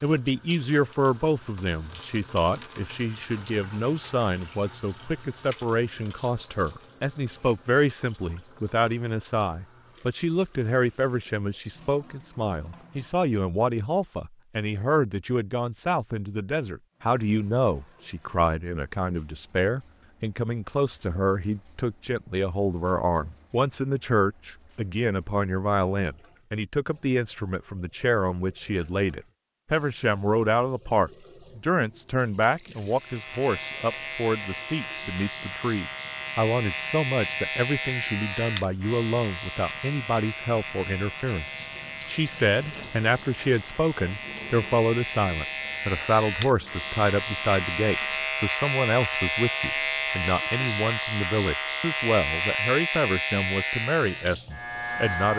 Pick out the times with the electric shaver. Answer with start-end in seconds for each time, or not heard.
32.9-55.3.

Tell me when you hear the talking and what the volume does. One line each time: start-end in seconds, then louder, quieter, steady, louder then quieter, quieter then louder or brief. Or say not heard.
0.0-55.3 steady.